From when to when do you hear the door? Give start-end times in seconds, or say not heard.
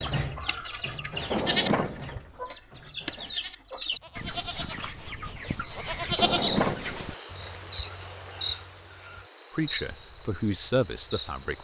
1.3-2.2, 6.2-7.5.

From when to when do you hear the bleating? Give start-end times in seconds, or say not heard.
0.0-6.5.